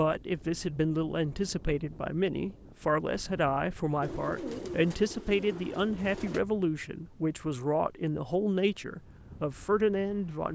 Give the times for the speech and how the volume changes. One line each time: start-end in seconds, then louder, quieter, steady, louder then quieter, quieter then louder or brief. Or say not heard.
0.0-10.4 steady.